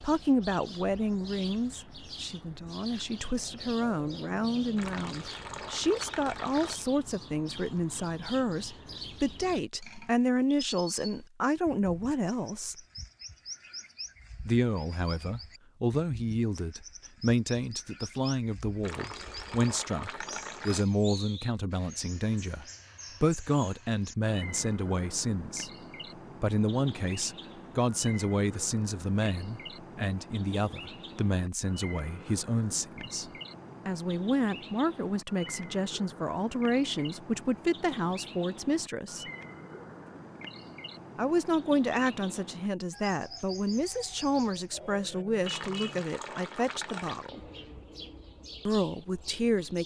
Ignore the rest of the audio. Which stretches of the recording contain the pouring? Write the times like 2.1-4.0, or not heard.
4.8-6.8, 18.8-20.9, 45.4-47.3.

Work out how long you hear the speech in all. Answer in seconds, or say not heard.
44 s.